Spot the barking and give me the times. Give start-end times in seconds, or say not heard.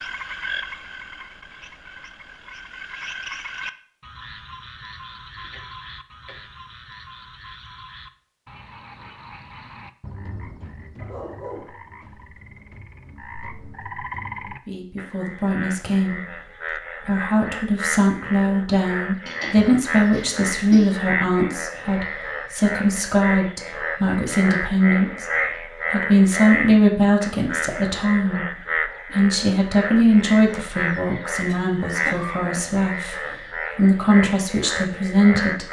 10.9-11.8.